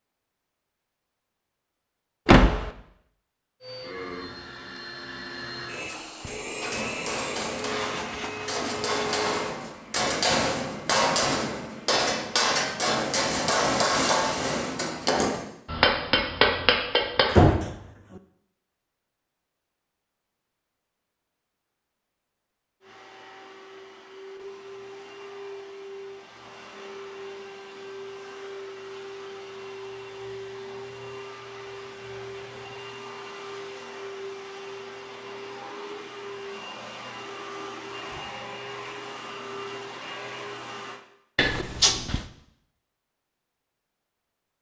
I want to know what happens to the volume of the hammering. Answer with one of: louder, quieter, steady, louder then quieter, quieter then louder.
louder.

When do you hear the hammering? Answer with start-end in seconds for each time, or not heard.
6.2-17.6.